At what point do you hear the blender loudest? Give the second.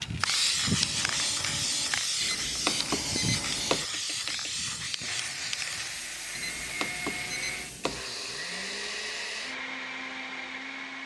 9 s.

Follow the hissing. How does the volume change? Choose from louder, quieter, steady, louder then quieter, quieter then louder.
quieter.